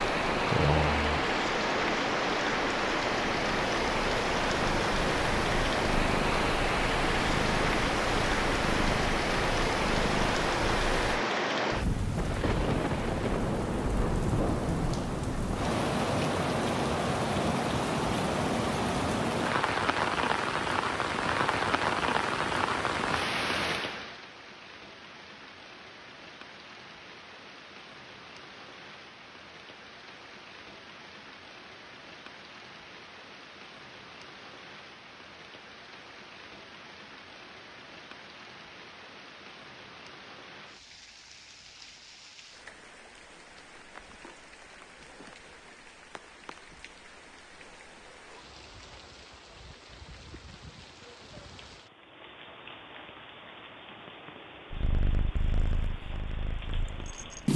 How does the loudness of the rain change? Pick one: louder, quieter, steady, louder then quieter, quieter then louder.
quieter.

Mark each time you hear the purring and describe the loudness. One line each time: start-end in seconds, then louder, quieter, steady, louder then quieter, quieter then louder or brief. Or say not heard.
0.0-11.2 quieter then louder
54.7-57.5 brief.